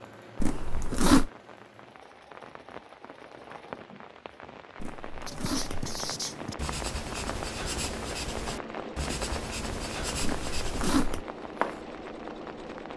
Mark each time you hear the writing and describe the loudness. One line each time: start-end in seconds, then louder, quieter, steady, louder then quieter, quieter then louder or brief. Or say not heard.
5.2-11.8 steady.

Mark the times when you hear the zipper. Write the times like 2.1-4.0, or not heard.
0.4-1.3, 4.8-6.0, 10.2-11.2.